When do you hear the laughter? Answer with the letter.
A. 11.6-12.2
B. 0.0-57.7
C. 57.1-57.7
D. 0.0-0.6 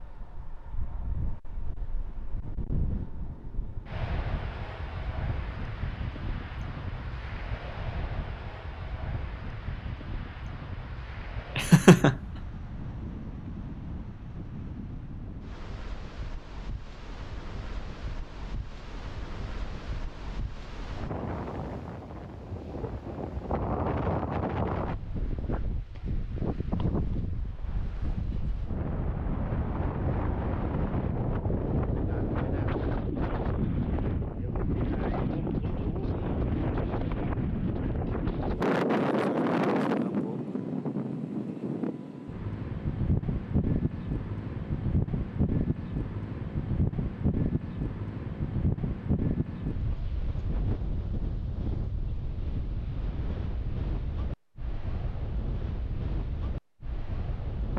A.